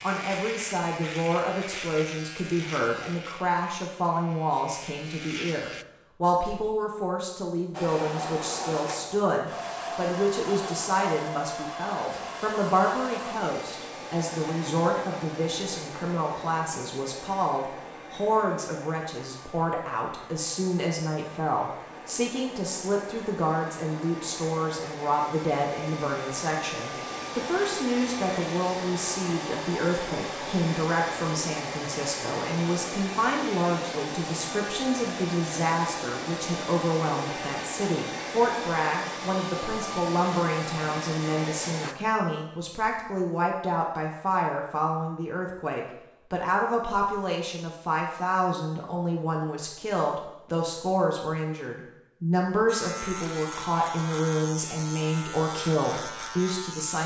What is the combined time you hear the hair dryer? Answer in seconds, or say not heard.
34 s.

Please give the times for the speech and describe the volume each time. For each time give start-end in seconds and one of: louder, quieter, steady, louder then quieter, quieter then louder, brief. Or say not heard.
0.0-57.0 steady.